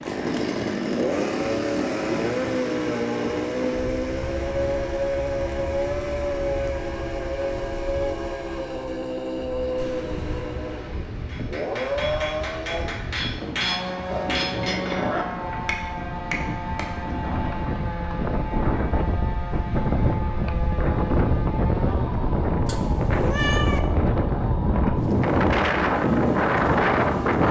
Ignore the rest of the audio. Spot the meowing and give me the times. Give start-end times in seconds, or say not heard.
9.8-10.6, 22.6-23.8.